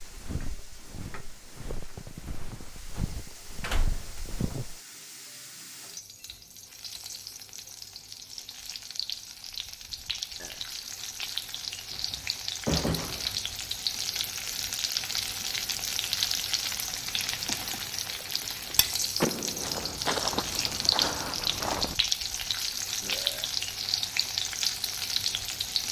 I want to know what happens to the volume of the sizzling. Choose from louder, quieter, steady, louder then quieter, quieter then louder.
louder.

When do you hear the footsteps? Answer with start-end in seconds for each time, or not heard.
0.0-4.8, 19.6-21.9.